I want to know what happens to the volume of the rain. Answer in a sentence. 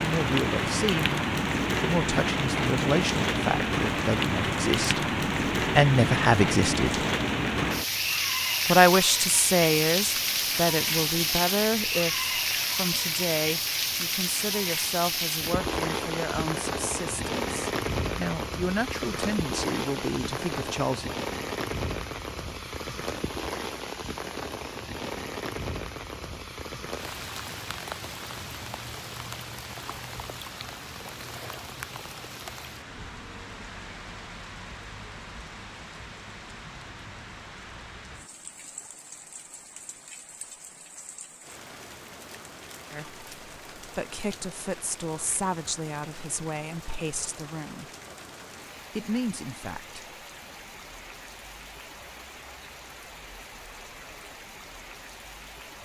The volume of the rain goes down.